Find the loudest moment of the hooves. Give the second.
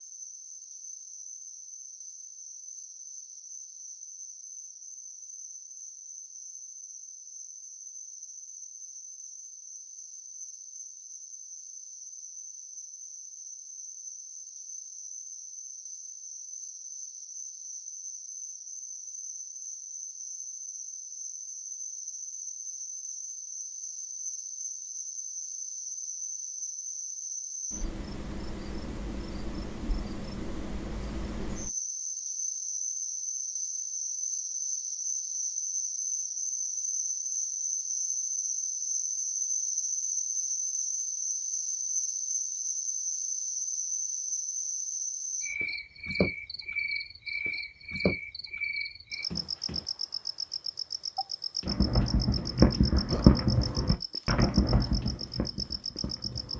53 s.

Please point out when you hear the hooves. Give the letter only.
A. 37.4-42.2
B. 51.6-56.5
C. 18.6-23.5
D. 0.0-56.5
B.